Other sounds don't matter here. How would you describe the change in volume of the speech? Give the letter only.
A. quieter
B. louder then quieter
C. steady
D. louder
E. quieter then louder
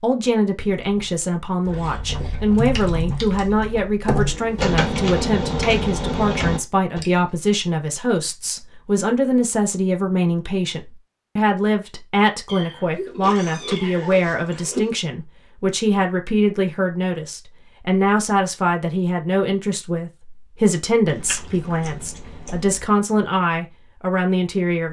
C.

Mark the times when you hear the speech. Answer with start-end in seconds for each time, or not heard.
0.0-24.8.